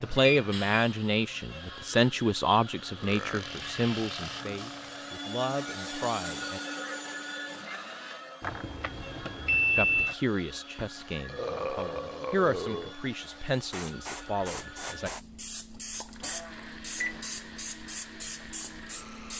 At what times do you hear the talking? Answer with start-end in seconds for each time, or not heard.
0.0-6.6, 9.8-15.1.